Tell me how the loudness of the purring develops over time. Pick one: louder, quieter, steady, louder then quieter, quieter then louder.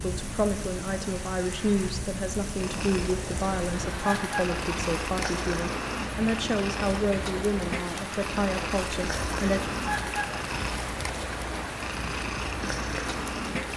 steady.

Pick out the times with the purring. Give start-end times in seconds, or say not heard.
2.5-13.7.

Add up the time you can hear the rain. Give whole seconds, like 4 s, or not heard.
14 s.